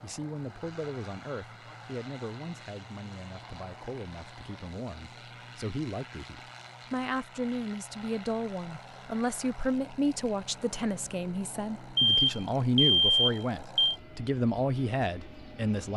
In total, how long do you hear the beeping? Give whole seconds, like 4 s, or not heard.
2 s.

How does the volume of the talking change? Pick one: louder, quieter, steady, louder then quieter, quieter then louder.
louder.